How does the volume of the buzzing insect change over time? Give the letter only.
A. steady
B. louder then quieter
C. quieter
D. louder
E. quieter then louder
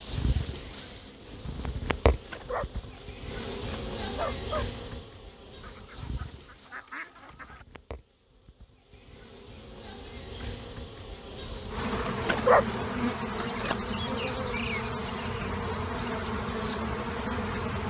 E.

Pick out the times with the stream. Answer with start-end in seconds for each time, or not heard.
not heard.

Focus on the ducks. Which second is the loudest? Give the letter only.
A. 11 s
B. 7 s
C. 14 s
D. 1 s
B.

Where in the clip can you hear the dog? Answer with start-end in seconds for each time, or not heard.
2.0-4.7, 12.1-13.8.